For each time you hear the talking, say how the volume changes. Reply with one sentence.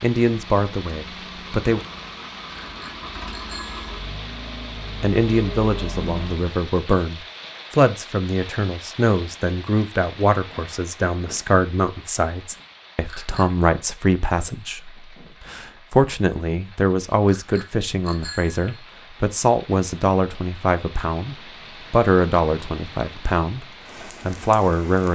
The talking can be heard briefly from 0.0 to 1.8 s; and from 5.0 to 25.1 s, at a steady volume.